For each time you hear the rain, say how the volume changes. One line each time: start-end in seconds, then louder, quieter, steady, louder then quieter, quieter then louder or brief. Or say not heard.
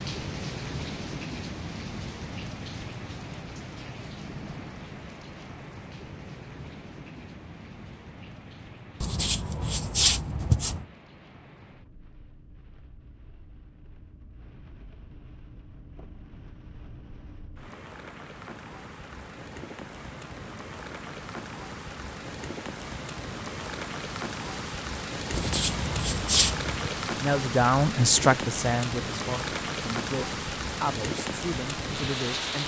0.0-32.6 quieter then louder.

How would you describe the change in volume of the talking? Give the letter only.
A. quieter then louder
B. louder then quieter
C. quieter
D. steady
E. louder
C.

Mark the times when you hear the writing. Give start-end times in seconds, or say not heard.
9.0-10.8, 25.3-26.9.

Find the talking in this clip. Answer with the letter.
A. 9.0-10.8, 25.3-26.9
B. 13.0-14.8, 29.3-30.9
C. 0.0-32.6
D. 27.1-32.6
D.